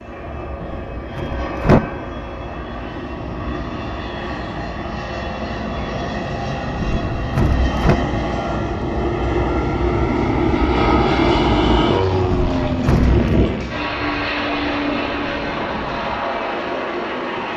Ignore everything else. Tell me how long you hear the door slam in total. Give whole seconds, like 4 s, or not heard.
3 s.